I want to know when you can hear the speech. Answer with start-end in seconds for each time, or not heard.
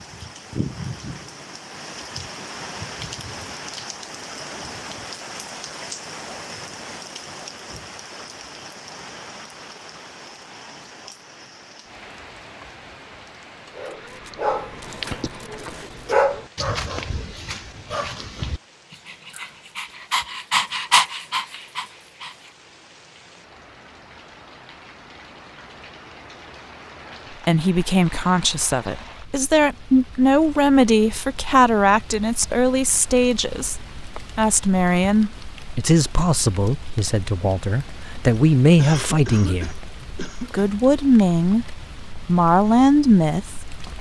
27.4-33.8, 34.4-39.7, 40.5-41.6, 42.2-43.9.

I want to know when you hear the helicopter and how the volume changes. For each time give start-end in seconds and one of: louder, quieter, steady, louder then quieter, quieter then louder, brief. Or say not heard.
not heard.